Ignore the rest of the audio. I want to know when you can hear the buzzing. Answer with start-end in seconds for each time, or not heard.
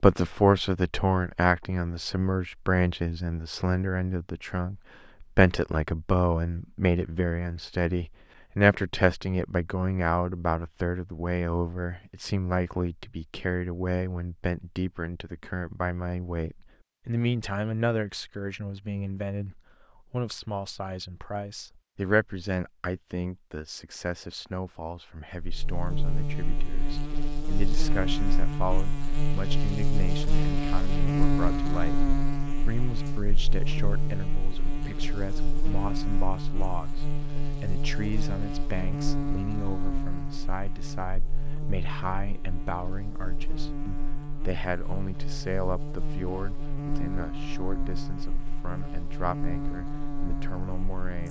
25.4-51.2.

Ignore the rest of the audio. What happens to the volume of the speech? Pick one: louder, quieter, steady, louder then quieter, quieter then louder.
quieter.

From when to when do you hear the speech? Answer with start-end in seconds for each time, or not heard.
0.0-51.2.